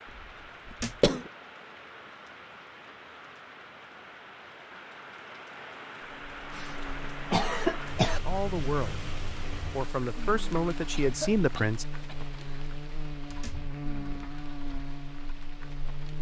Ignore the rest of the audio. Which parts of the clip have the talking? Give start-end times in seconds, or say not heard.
8.2-9.1, 9.7-11.8.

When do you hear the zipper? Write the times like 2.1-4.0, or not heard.
not heard.